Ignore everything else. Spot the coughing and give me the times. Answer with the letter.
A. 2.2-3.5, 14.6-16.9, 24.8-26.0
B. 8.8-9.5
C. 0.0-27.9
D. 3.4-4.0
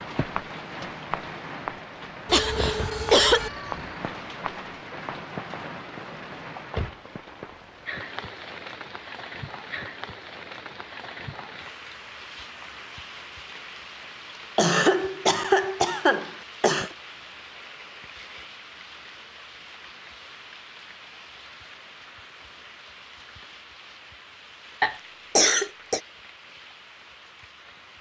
A.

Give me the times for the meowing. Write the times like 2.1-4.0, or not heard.
3.4-4.0.